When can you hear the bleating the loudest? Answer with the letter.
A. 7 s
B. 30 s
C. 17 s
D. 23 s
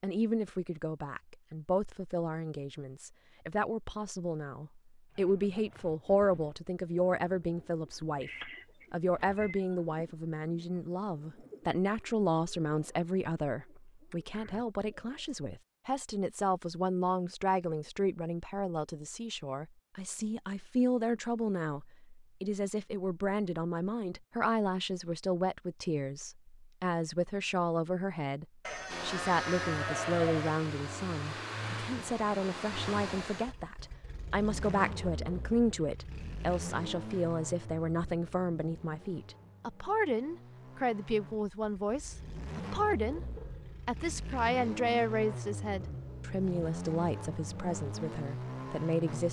B.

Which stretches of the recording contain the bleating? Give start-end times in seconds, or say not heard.
28.6-30.6.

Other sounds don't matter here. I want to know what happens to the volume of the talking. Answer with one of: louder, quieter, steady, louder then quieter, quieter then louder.
steady.